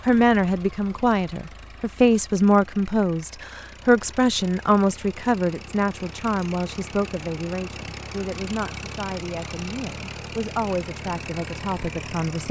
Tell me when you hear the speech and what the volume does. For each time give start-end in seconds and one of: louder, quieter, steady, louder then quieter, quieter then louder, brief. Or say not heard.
0.0-12.4 quieter.